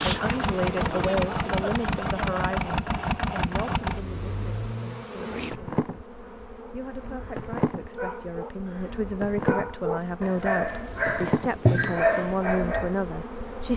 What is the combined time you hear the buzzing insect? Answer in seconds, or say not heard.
14 s.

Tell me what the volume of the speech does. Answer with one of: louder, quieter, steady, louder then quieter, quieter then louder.
quieter then louder.